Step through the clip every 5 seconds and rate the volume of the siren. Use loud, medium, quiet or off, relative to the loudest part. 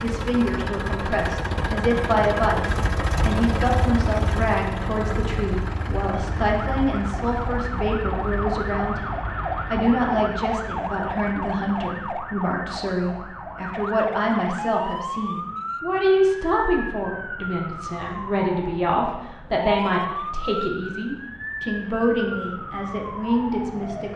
off, loud, loud, loud, loud.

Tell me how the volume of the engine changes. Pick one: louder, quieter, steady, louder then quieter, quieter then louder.
quieter.